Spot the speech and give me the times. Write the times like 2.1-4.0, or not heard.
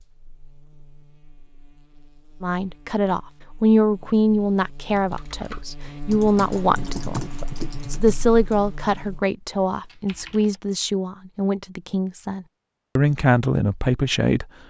2.4-14.4.